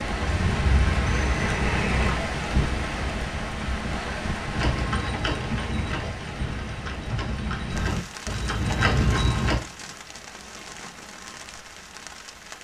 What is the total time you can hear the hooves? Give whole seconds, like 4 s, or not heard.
7 s.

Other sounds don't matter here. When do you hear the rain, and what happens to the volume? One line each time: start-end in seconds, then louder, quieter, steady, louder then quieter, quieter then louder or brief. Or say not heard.
0.0-12.5 quieter.